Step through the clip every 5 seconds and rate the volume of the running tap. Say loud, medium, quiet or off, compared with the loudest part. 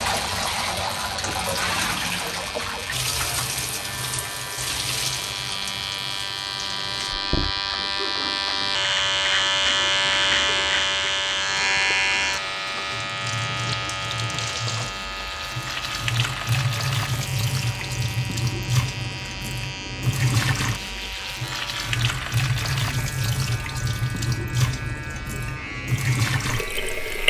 loud, medium, medium, loud, loud, loud.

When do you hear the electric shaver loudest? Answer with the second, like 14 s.
10 s.